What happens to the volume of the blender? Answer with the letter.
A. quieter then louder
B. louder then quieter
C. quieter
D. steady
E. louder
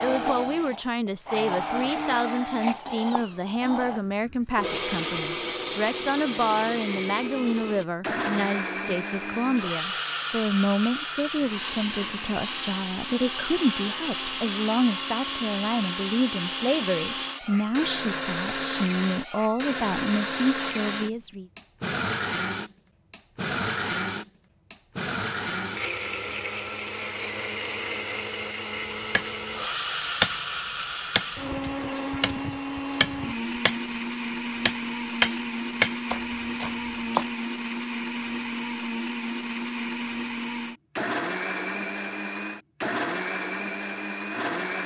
D.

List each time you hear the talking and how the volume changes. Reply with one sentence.
The talking can be heard from 0.0 to 21.4 s, at a steady volume.